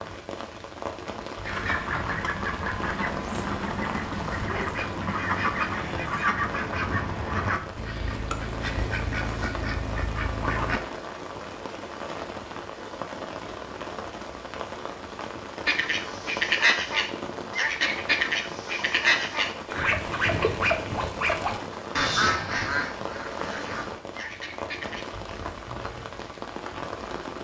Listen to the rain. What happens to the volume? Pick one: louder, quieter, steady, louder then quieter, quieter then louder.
steady.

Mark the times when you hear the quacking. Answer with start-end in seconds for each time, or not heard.
1.4-10.8, 15.7-25.1.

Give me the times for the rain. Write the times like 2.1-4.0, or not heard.
0.0-27.3.